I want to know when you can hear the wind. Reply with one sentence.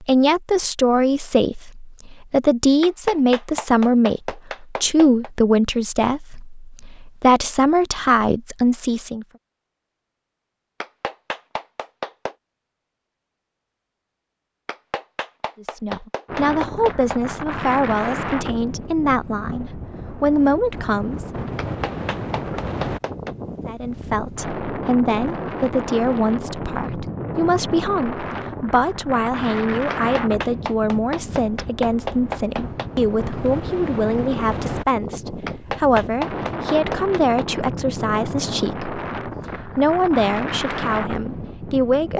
You can hear the wind from 16.2 to 42.1 s.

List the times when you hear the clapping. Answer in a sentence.
You can hear the clapping from 2.8 to 5.3 s, from 10.8 to 12.3 s, from 14.7 to 17.2 s, from 21.6 to 23.3 s, from 29.9 to 32.9 s and from 35.5 to 37.5 s.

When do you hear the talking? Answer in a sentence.
The talking can be heard from 0.0 to 9.2 s, from 15.6 to 21.3 s and from 23.6 to 42.1 s.